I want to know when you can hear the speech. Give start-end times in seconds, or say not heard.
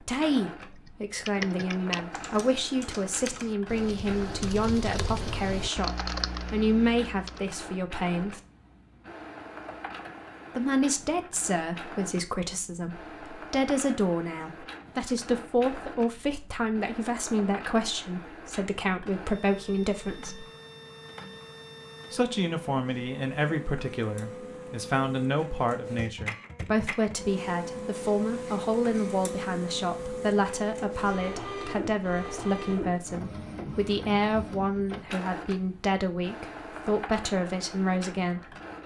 0.0-8.4, 10.6-20.4, 22.1-38.5.